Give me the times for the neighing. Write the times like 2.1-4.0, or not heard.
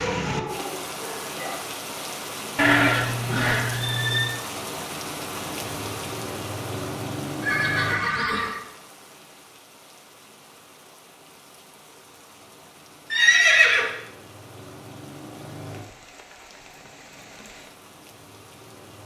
2.5-4.3, 7.4-8.6, 13.1-13.9.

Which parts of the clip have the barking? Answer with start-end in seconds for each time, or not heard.
0.0-1.6.